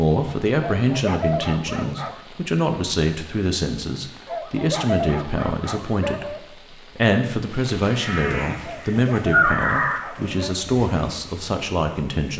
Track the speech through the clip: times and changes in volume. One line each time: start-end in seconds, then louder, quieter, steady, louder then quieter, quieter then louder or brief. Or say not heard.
0.0-12.3 steady.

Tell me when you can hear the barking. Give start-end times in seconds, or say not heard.
0.6-2.2, 4.2-6.4, 8.6-10.8.